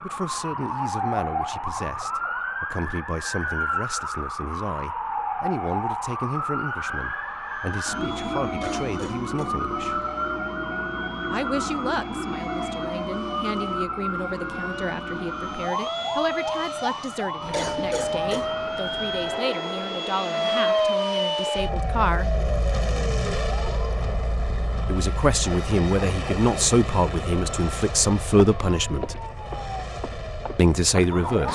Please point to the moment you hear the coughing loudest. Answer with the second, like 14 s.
18 s.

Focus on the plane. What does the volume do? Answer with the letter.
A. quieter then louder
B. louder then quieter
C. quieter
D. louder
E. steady
B.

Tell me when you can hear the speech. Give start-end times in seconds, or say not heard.
0.0-10.0, 11.3-22.3, 24.9-29.1, 30.6-31.5.